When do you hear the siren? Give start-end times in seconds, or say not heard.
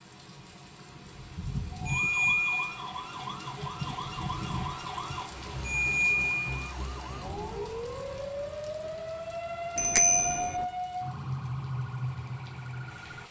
1.7-13.2.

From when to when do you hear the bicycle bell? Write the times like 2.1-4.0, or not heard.
1.9-2.8, 5.6-6.5, 9.8-10.4.